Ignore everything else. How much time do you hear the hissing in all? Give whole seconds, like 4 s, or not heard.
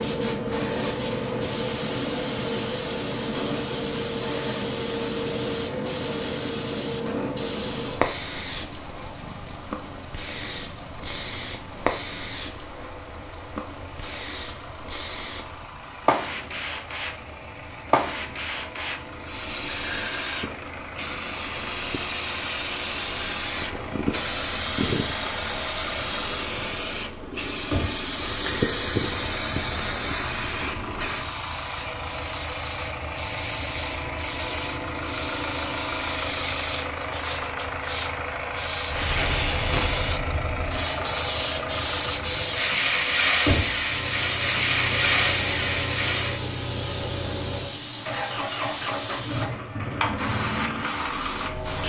52 s.